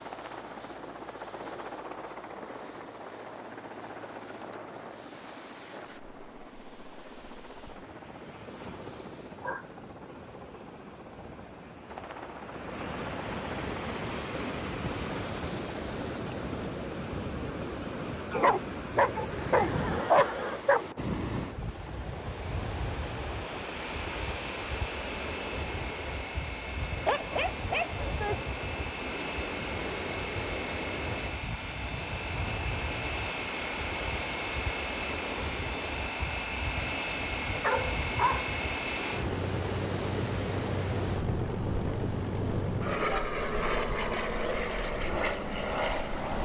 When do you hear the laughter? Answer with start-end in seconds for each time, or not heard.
19.3-20.6.